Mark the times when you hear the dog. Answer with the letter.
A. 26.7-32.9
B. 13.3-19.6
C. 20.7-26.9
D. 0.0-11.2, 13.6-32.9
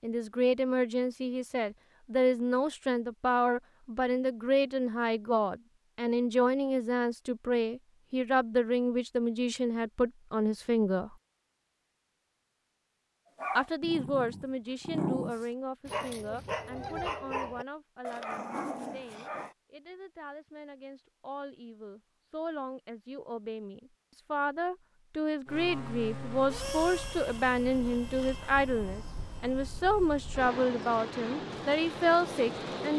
B.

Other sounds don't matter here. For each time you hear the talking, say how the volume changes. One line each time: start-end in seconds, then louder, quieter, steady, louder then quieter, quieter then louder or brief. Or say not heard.
0.0-11.2 steady
13.6-32.9 quieter then louder.